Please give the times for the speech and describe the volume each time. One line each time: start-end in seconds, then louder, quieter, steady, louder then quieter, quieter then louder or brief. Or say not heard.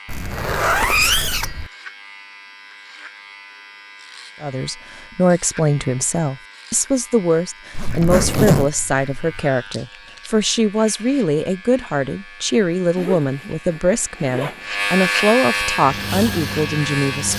4.4-17.3 steady.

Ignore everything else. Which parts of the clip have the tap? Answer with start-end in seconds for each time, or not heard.
15.7-17.3.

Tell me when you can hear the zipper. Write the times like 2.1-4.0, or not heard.
0.1-1.7, 7.8-9.4, 12.9-14.7.